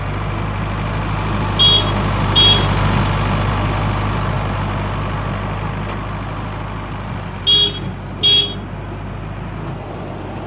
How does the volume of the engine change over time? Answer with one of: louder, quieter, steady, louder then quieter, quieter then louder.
quieter.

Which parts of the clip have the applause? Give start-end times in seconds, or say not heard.
not heard.